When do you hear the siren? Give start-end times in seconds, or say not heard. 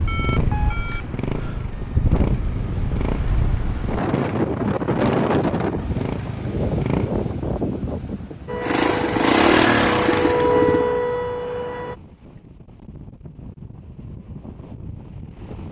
8.4-11.9.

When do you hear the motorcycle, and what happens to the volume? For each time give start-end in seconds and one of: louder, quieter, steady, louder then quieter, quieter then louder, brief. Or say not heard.
0.0-7.1 steady
8.6-10.8 brief.